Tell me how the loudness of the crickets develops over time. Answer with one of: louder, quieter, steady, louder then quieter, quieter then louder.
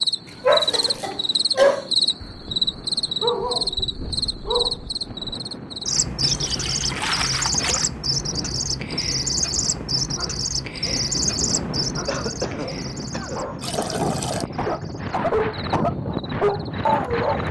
quieter.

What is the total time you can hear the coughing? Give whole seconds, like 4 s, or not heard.
3 s.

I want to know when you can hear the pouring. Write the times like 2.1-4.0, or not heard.
0.2-1.1, 6.2-7.9, 13.6-14.4.